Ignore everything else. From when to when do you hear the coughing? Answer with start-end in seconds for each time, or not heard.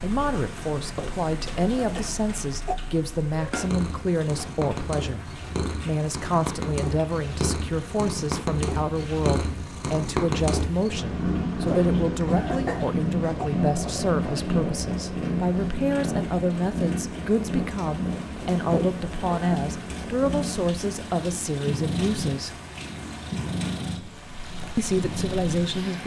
0.9-2.8, 11.7-13.5, 18.6-19.6.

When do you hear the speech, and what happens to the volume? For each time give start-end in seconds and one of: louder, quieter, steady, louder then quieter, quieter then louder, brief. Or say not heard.
0.0-22.6 steady
24.8-26.0 brief.